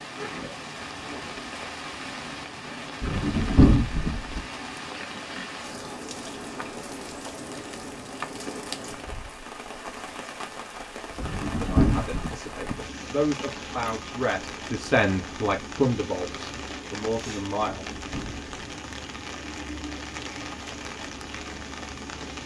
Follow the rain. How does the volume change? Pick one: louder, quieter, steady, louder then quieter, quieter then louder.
steady.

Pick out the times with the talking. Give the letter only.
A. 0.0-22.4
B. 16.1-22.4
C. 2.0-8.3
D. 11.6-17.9
D.